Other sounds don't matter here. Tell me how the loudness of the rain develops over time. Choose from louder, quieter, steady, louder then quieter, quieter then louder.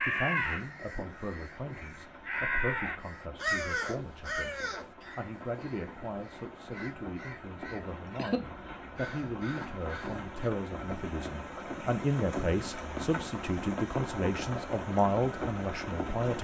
louder.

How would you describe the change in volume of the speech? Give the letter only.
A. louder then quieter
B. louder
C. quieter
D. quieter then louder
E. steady
B.